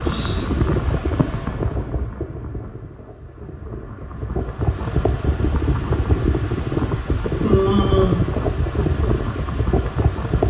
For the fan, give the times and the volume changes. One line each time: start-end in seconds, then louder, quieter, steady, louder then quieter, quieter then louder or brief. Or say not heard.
0.0-10.4 quieter then louder.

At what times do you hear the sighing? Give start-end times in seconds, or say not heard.
0.0-0.6, 7.4-8.2.